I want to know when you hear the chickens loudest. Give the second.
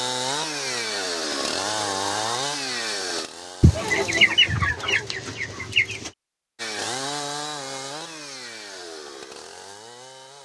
4 s.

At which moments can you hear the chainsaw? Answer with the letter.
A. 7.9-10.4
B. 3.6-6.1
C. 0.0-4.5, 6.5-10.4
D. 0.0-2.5
C.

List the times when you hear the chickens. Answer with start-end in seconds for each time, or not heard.
3.6-6.1.